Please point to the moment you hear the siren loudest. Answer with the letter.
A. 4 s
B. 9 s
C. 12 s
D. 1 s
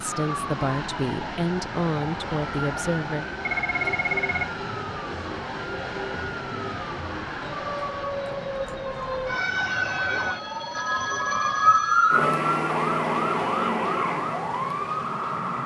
C.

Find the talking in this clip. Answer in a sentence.
The talking can be heard from 0.0 to 3.2 s.